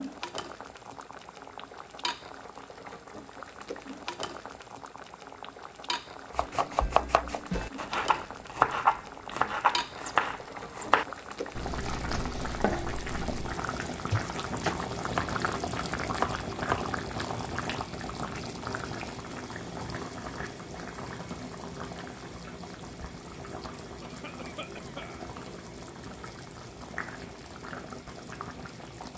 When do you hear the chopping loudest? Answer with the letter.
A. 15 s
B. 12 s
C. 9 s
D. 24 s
C.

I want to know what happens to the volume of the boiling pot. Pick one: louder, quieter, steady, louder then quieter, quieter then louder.
louder then quieter.